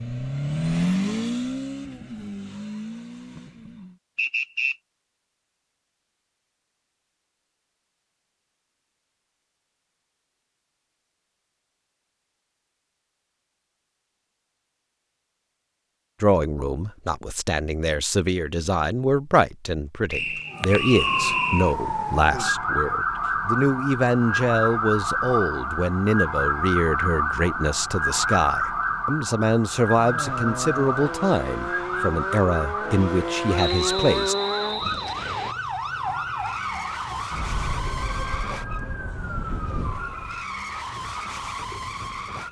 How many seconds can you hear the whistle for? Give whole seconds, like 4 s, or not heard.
4 s.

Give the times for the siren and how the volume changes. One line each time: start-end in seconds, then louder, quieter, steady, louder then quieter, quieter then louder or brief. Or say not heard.
20.5-40.5 quieter.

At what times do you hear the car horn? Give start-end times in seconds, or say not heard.
not heard.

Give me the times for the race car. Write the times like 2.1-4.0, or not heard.
0.0-4.0, 29.9-42.4.